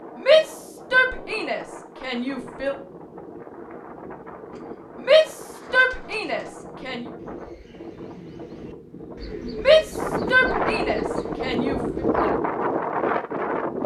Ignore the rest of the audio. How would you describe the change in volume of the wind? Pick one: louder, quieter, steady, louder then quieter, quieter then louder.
louder.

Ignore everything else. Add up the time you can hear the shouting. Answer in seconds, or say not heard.
7 s.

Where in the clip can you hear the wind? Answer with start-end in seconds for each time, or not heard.
0.0-13.8.